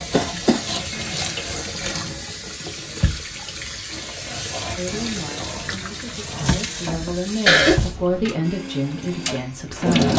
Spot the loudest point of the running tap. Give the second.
10 s.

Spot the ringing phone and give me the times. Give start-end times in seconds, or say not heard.
not heard.